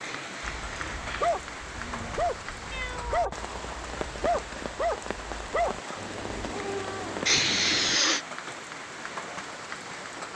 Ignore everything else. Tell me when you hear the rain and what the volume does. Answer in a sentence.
You can hear the rain from 0.0 to 10.3 s, at a steady volume.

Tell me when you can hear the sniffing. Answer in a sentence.
You can hear the sniffing from 0.0 to 1.3 s and from 7.2 to 8.2 s.